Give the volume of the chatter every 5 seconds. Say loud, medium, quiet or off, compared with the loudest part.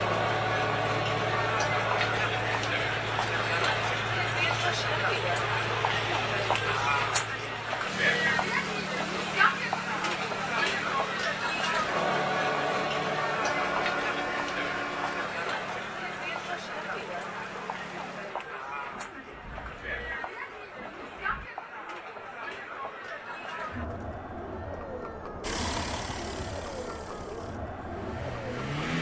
loud, loud, loud, medium, medium, medium.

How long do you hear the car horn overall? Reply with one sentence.
The car horn can be heard for 2 seconds in total.